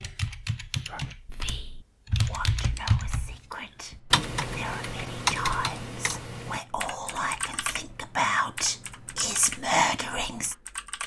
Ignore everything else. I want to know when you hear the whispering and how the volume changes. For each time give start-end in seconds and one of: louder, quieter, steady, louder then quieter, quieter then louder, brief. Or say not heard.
0.8-10.6 louder.